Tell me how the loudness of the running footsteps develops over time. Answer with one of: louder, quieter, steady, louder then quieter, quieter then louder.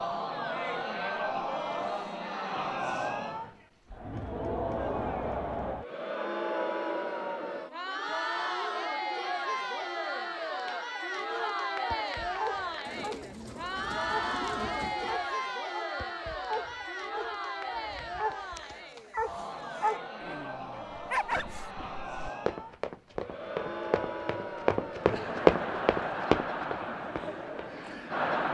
louder then quieter.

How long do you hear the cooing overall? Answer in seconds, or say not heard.
2 s.